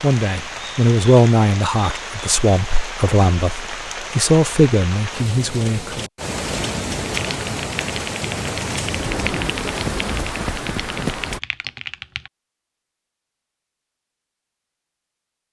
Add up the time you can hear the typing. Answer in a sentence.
The typing can be heard for 5 seconds in total.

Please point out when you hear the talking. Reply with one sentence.
The talking can be heard from 0.0 to 6.0 s.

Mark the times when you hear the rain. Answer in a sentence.
You can hear the rain from 0.0 to 11.4 s.